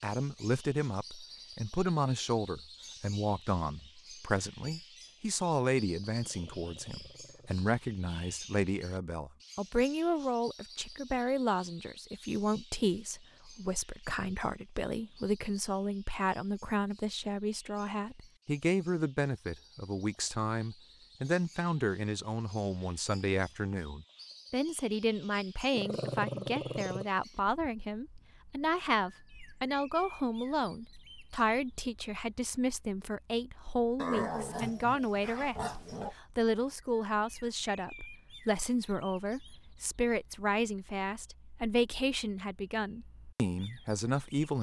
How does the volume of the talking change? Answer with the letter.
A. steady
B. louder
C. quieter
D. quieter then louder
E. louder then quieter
A.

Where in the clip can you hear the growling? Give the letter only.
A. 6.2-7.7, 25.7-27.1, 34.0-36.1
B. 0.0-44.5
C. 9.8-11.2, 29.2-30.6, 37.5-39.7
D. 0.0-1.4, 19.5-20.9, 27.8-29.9
A.